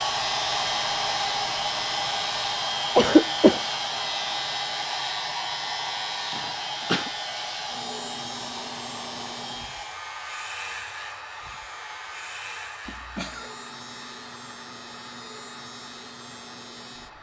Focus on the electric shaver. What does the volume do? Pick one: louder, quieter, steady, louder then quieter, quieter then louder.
quieter.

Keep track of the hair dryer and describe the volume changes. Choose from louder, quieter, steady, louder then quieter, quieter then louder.
quieter.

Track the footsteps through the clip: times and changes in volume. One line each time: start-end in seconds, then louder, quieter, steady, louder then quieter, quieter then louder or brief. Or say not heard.
not heard.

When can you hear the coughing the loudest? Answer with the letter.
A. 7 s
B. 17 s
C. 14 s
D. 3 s
D.